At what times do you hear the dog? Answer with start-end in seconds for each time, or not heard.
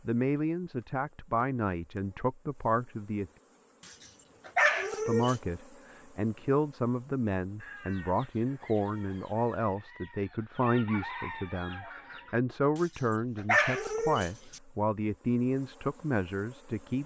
3.9-5.3, 12.8-14.6.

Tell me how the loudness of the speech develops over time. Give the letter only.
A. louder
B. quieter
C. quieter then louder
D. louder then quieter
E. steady
E.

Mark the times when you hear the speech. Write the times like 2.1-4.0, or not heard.
0.1-3.3, 5.0-17.0.